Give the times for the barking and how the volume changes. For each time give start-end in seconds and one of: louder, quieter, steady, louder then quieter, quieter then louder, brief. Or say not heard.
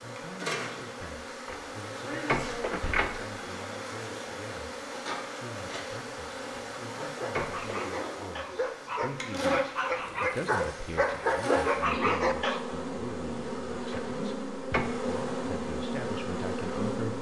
7.0-12.6 louder.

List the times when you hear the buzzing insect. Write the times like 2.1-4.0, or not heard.
0.0-17.1.